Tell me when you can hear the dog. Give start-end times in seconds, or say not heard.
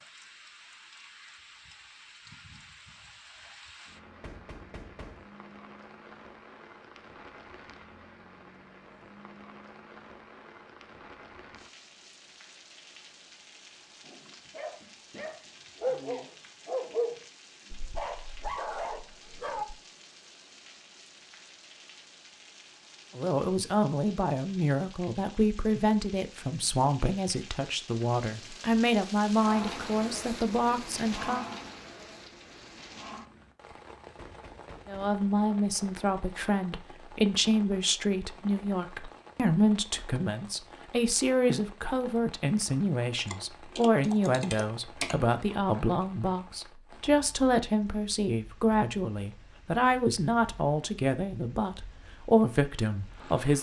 14.1-19.8.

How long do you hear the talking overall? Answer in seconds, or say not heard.
27 s.